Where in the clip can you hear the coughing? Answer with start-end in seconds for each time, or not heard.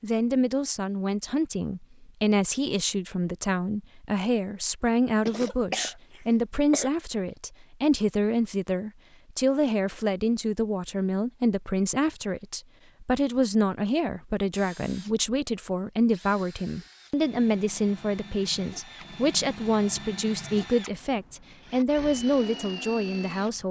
5.2-6.9.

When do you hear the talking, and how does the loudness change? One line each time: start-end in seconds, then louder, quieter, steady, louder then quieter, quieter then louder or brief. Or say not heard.
0.0-23.6 steady.